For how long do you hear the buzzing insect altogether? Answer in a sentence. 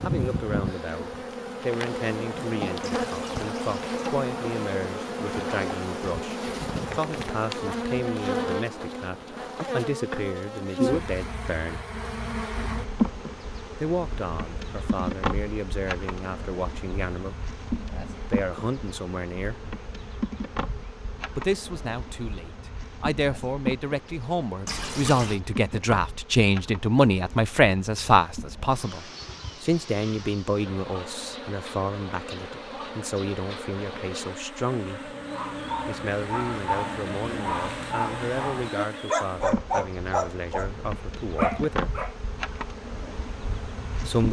You can hear the buzzing insect for 44 seconds altogether.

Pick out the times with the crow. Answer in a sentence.
You can't hear the crow here.